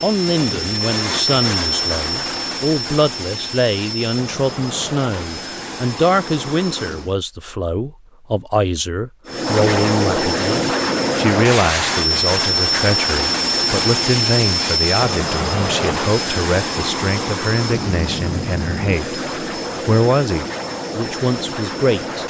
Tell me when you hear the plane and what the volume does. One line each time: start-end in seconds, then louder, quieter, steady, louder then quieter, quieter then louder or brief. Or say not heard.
0.0-7.2 quieter
9.2-22.2 quieter.